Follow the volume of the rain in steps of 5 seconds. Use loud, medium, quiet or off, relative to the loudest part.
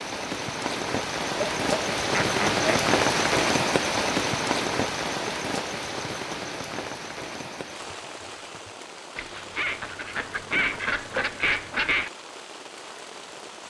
loud, medium, quiet.